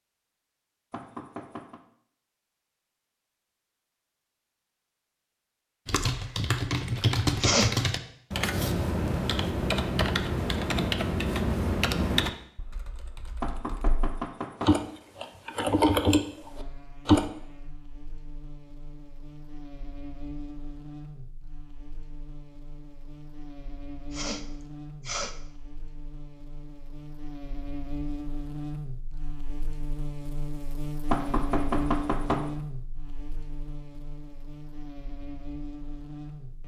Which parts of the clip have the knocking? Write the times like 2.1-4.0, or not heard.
0.9-1.8, 13.4-14.8, 31.1-32.5.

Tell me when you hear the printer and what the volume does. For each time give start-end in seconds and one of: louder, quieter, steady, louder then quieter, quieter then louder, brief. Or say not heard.
not heard.